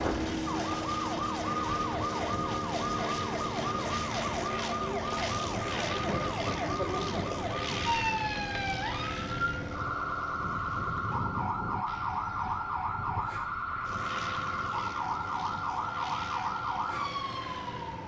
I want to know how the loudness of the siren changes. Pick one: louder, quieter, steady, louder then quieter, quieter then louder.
steady.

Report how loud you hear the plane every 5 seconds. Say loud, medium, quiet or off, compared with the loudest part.
loud, loud, medium, medium.